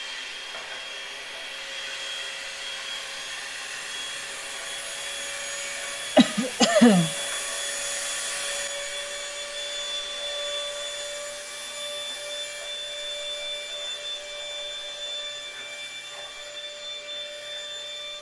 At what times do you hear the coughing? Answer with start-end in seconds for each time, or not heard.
6.2-7.1.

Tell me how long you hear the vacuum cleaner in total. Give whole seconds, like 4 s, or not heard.
18 s.